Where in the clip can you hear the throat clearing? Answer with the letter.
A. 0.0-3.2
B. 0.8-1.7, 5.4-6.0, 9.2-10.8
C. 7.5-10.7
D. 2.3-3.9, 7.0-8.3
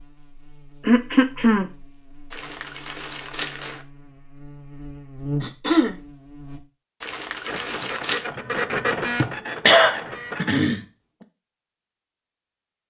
B.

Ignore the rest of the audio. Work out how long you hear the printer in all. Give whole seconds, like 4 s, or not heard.
3 s.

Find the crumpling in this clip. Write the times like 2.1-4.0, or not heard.
2.3-3.9, 7.0-8.3.